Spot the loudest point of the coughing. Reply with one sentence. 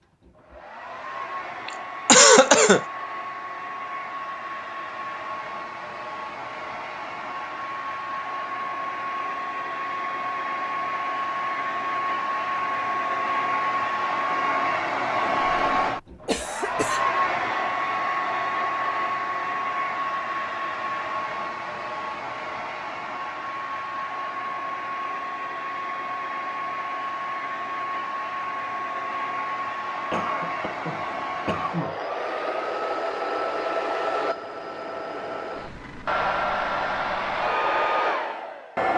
The volume of the coughing peaks at 2 seconds.